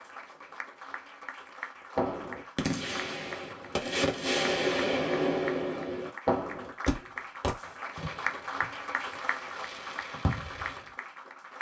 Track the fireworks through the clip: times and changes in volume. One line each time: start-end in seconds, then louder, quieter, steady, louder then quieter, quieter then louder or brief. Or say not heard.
1.9-10.9 louder then quieter.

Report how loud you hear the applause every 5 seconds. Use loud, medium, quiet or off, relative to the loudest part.
medium, loud, loud.